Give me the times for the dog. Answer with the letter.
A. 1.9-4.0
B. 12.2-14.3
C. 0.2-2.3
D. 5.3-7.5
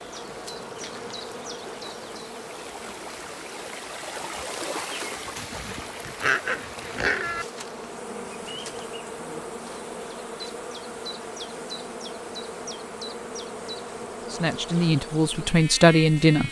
D.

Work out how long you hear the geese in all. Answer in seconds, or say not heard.
not heard.